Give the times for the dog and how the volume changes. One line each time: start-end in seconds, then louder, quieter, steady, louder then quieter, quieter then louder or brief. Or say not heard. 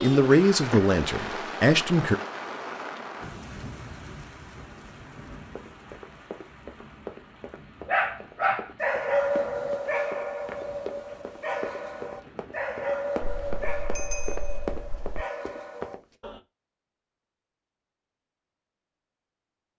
7.8-16.4 quieter.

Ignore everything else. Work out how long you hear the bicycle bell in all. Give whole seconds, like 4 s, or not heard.
2 s.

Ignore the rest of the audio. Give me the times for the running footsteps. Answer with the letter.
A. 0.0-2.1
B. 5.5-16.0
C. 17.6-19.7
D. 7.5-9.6
B.